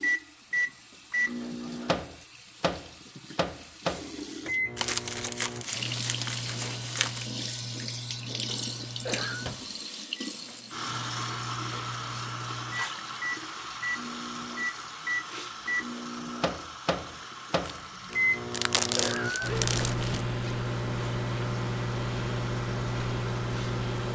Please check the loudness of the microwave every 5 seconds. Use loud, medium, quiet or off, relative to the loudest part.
loud, medium, medium, loud, loud.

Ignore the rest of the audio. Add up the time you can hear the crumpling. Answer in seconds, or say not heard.
5 s.